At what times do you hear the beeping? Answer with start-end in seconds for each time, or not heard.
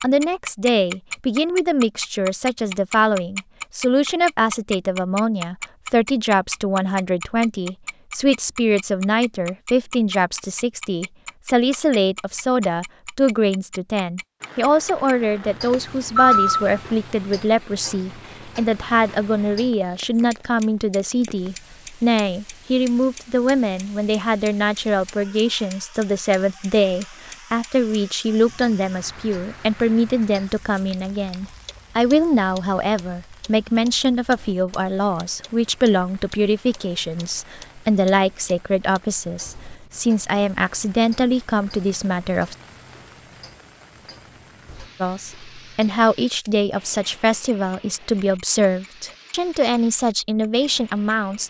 15.7-16.7.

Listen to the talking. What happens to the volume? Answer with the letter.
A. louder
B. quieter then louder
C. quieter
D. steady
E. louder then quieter
D.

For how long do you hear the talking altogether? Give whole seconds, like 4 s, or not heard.
49 s.